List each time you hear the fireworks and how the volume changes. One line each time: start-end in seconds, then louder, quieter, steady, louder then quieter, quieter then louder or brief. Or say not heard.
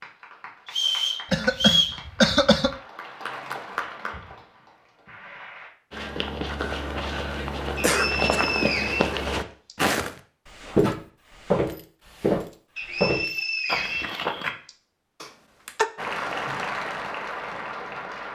not heard.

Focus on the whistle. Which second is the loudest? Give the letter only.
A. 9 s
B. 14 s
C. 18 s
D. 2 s
D.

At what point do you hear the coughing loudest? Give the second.
2 s.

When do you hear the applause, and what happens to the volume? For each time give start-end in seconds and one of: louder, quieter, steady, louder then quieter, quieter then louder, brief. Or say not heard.
0.0-5.7 louder then quieter
15.9-18.3 brief.